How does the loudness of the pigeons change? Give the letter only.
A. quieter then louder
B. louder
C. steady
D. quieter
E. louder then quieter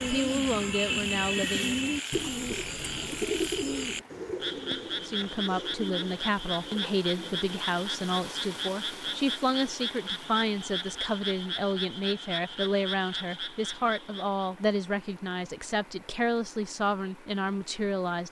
D.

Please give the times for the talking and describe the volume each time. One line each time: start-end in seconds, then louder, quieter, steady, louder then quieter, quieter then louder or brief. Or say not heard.
0.0-1.8 brief
5.0-18.2 steady.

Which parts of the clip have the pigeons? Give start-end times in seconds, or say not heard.
0.0-7.5.